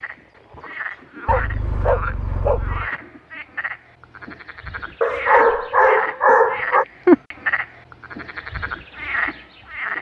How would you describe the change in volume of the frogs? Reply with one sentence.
The volume of the frogs goes up, then down.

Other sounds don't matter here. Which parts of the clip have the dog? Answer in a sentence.
The dog can be heard from 1.2 to 2.9 s and from 5.0 to 6.8 s.